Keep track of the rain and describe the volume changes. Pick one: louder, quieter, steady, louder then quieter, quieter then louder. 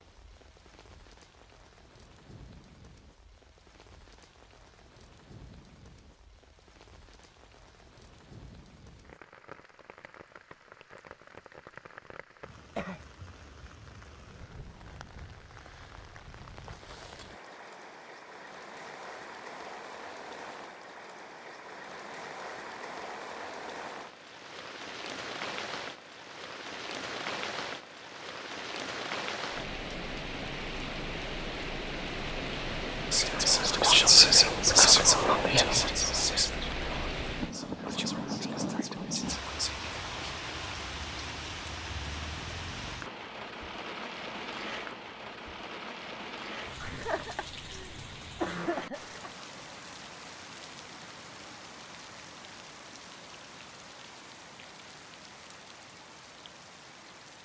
louder then quieter.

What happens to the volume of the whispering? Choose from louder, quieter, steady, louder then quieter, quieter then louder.
quieter.